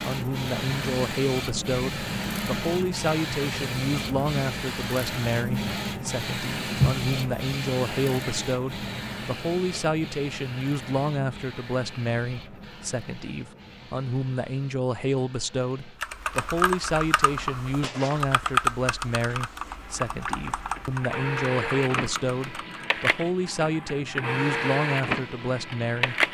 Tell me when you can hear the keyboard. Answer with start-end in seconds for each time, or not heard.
16.0-22.9.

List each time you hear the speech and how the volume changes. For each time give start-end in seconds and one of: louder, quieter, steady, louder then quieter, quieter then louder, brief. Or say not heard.
0.0-26.2 steady.